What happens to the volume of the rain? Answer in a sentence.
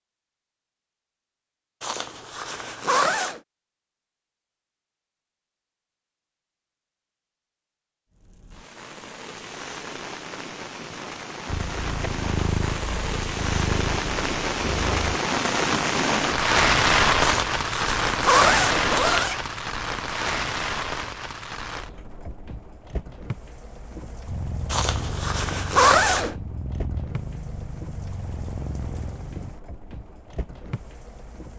The volume of the rain goes up, then down.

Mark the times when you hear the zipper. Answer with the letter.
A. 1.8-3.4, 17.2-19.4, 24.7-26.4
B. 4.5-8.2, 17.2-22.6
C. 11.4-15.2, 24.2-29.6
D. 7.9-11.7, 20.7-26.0
A.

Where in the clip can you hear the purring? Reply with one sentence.
The purring can be heard from 11.4 to 15.2 s and from 24.2 to 29.6 s.